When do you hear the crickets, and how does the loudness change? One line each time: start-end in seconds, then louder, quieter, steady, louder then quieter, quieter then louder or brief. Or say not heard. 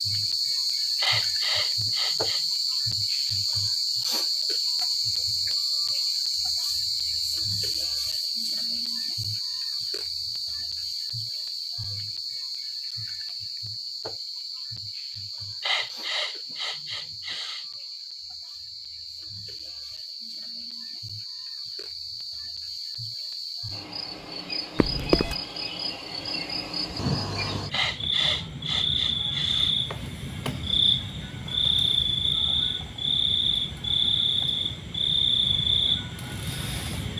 0.0-37.1 quieter then louder.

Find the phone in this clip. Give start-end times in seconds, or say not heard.
24.8-25.4.